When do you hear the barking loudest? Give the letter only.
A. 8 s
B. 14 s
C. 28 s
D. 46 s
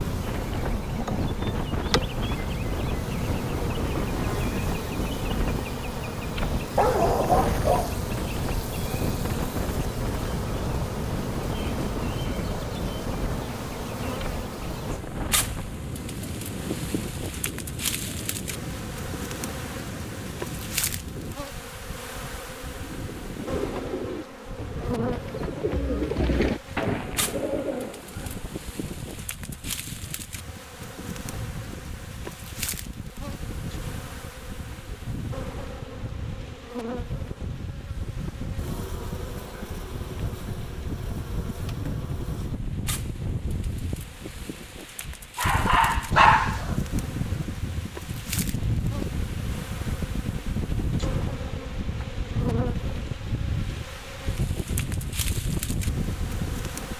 D.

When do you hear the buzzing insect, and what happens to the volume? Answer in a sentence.
You can hear the buzzing insect from 0.0 to 56.9 s, getting quieter.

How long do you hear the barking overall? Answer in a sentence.
The barking can be heard for 3 seconds in total.